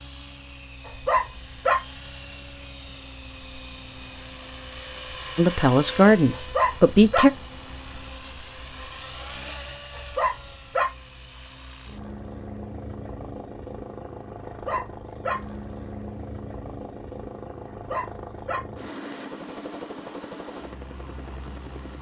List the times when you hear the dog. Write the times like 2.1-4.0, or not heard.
0.8-1.8, 6.3-7.2, 9.9-10.8, 14.4-15.3, 17.7-18.6.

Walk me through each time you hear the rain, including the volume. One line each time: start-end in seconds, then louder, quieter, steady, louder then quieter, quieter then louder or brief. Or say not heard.
not heard.